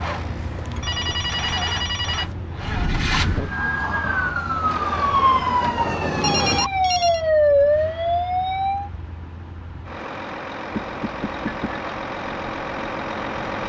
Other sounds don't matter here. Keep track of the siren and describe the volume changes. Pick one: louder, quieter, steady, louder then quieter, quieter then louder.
louder.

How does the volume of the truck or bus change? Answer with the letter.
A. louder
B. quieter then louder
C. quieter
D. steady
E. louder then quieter
B.